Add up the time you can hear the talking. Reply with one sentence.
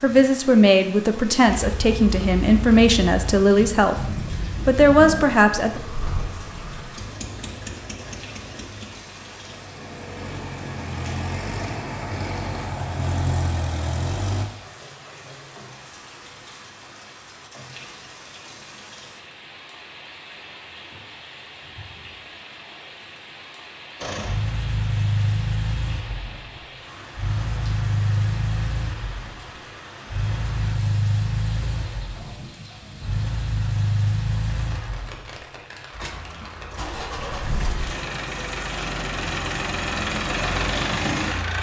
You can hear the talking for 5 seconds altogether.